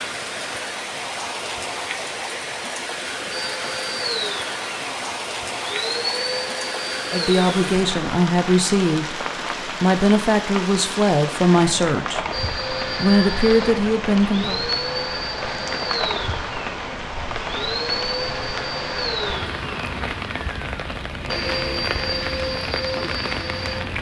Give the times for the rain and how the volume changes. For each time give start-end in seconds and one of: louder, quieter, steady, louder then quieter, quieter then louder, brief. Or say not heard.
0.0-23.9 steady.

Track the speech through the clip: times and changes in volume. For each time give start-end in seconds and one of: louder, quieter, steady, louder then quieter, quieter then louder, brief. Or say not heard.
7.1-12.2 steady
12.9-14.6 brief.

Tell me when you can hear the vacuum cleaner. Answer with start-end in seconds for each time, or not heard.
3.3-7.8, 12.3-23.9.